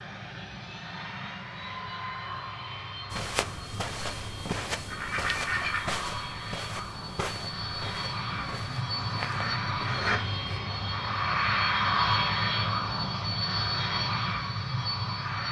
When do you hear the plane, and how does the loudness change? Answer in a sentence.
You can hear the plane from 0.0 to 15.4 s, getting louder.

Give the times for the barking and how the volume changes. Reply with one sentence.
You can't hear the barking here.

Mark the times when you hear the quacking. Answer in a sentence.
The quacking can be heard from 4.5 to 6.0 s and from 8.2 to 10.2 s.